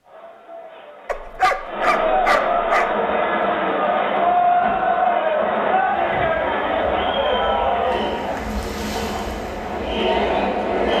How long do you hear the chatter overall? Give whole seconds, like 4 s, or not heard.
11 s.